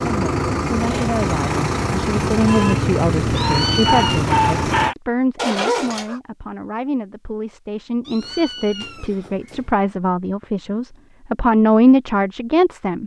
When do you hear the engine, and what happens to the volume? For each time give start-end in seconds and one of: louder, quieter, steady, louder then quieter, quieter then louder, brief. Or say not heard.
0.0-5.0 steady.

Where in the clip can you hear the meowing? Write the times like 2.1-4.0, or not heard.
3.3-4.3, 8.1-9.8.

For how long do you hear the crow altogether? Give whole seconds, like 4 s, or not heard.
not heard.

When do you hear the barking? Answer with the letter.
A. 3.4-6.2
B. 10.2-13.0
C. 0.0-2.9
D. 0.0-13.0
A.